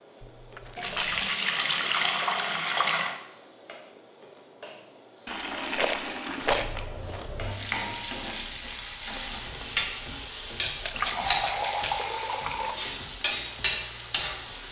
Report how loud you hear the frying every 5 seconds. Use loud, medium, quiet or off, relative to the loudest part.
quiet, loud, loud.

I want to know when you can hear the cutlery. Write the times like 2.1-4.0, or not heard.
not heard.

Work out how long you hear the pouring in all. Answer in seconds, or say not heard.
6 s.